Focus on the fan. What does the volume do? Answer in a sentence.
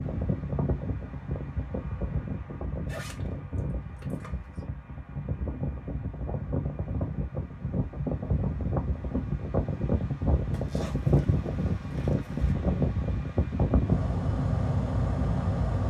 The volume of the fan goes up.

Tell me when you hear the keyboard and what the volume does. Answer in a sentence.
The keyboard can't be heard in this clip.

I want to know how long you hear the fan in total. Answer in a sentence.
You can hear the fan for 16 seconds altogether.